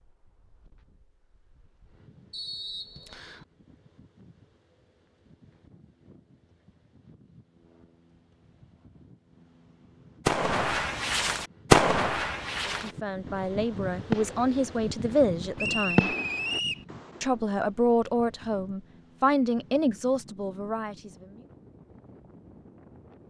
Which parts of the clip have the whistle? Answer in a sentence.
You can hear the whistle from 2.3 to 3.5 s and from 15.6 to 16.9 s.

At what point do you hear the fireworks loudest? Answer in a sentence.
The volume of the fireworks peaks at 12 seconds.